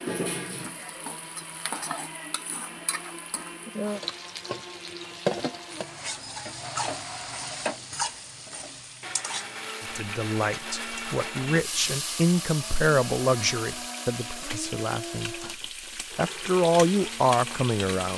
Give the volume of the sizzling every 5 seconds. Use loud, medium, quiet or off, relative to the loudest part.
loud, loud, medium, loud.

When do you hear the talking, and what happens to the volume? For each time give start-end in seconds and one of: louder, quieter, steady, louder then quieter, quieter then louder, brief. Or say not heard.
9.8-15.4 louder then quieter
16.1-18.1 brief.